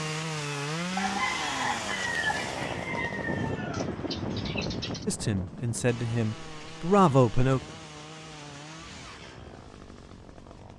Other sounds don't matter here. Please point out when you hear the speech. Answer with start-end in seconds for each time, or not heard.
5.0-7.6.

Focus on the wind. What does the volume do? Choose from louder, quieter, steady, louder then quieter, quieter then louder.
louder then quieter.